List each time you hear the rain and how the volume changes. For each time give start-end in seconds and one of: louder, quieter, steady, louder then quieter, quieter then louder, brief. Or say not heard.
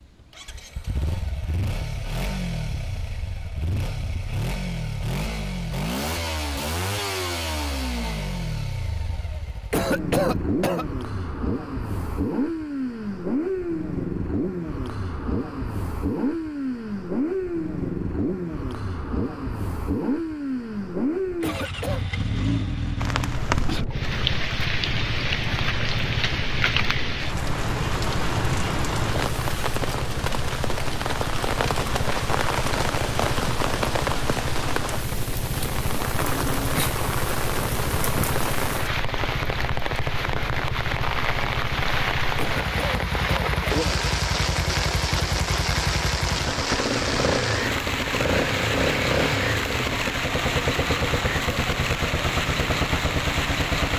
22.9-53.9 steady.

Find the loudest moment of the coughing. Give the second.
10 s.